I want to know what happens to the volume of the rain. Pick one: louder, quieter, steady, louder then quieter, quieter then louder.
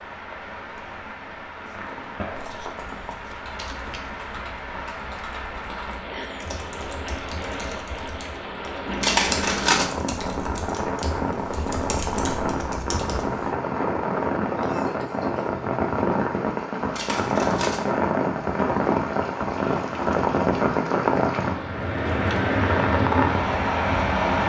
louder.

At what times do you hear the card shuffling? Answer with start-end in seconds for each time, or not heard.
1.6-4.1, 8.8-9.9, 16.8-17.9.